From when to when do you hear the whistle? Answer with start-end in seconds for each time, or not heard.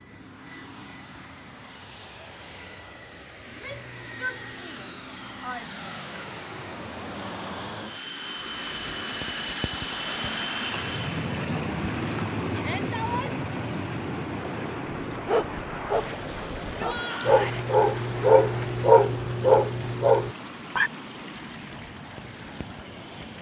not heard.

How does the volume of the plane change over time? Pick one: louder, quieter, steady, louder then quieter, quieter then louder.
louder then quieter.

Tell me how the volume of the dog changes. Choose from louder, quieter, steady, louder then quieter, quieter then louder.
louder.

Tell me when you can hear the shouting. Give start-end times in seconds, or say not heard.
3.5-5.7, 12.5-13.4, 16.8-17.6.